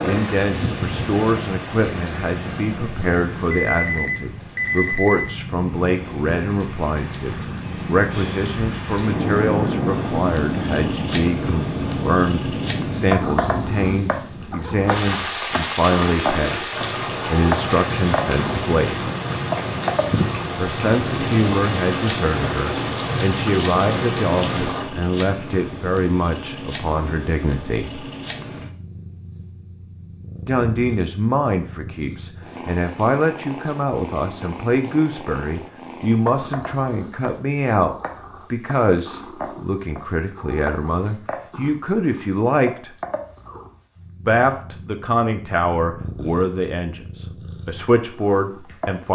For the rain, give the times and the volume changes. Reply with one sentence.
You can hear the rain from 0.0 to 24.9 s, getting louder.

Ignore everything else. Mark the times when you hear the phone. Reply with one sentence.
The phone can be heard from 3.5 to 5.3 s.